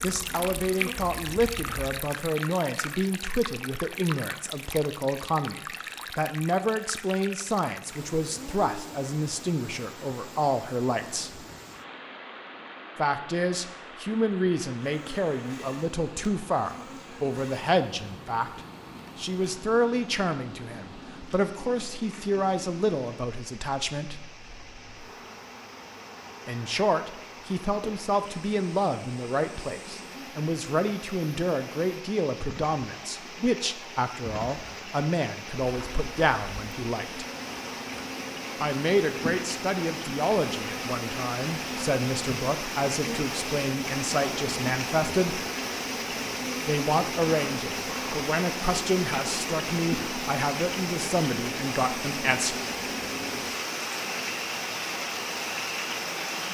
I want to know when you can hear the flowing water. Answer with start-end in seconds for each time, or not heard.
0.0-56.4.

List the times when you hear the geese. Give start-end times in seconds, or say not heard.
not heard.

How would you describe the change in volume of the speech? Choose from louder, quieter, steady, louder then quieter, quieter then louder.
steady.